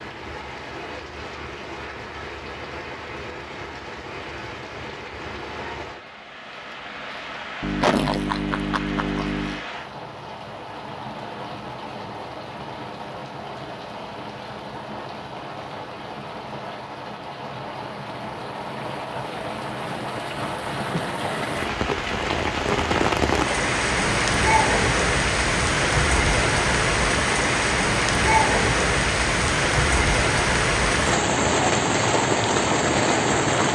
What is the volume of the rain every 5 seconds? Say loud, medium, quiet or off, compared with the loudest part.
quiet, quiet, quiet, quiet, loud, loud, loud.